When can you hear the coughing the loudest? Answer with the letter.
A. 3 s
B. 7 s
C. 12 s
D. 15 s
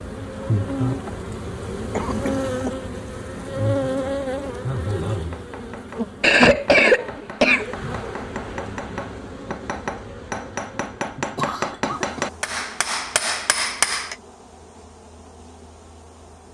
B.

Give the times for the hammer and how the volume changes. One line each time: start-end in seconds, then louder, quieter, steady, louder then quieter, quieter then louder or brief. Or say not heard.
5.1-14.2 louder.